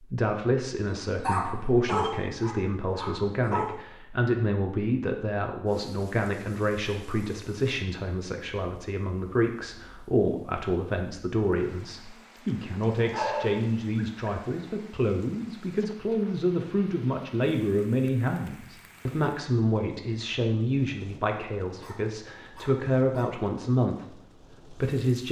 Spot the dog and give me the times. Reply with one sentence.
You can hear the dog from 0.8 to 3.7 s, from 13.0 to 14.6 s and from 21.8 to 23.3 s.